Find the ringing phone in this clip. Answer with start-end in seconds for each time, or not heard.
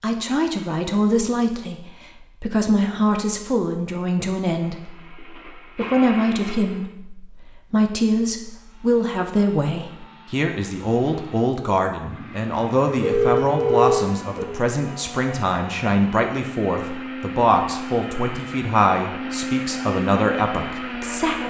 13.0-14.5.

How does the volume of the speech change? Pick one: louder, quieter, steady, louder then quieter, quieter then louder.
steady.